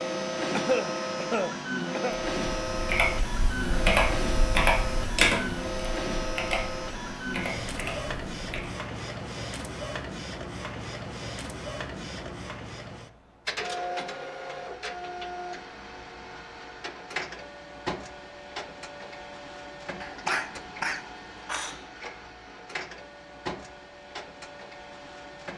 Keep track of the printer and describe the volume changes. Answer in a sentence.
The volume of the printer goes down.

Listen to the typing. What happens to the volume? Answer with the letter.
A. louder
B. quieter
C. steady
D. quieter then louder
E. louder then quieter
B.